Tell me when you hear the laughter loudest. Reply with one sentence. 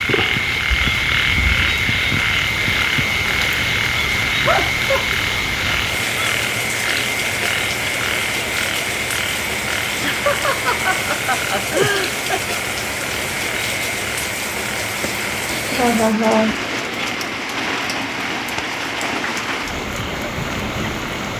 The volume of the laughter peaks at 16 seconds.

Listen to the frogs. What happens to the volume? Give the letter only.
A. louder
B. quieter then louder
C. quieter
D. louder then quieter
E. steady
C.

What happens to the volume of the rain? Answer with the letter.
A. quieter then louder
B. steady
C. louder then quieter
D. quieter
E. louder
B.